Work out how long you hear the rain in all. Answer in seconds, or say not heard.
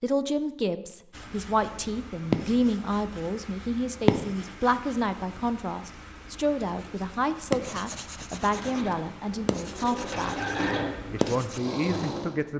not heard.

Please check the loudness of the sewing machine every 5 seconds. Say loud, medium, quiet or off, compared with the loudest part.
off, medium, loud.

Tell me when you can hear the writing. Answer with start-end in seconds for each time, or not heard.
1.1-11.6.